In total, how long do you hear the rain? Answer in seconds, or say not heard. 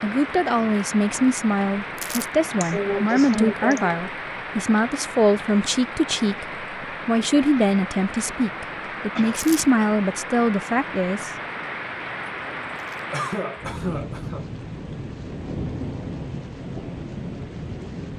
18 s.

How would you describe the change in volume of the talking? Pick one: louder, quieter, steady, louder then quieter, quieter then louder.
steady.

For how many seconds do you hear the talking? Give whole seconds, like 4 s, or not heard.
11 s.